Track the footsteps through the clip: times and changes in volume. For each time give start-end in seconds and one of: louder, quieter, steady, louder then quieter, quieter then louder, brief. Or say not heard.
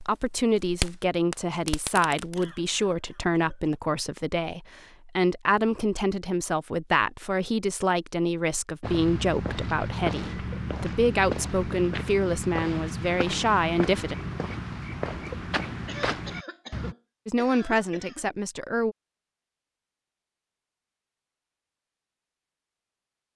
8.8-16.9 steady.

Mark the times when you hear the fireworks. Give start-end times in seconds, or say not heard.
0.0-2.5.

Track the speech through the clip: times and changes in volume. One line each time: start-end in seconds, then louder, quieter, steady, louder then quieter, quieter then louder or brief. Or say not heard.
0.1-14.2 steady
17.2-18.9 brief.